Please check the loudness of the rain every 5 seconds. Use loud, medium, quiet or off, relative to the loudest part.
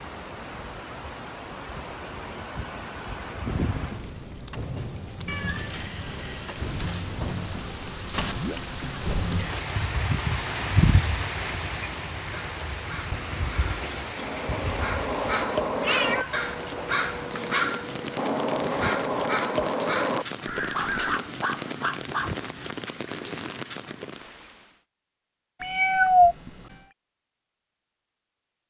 medium, loud, loud, medium, medium, off.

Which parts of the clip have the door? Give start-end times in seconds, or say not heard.
not heard.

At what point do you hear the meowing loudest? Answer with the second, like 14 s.
26 s.